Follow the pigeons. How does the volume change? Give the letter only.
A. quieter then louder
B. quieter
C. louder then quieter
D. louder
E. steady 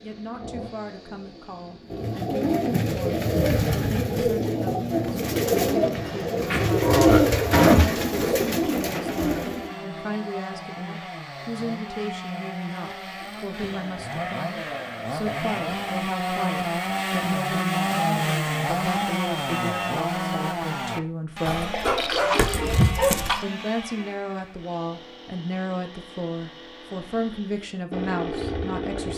C.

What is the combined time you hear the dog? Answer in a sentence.
The dog can be heard for 2 seconds in total.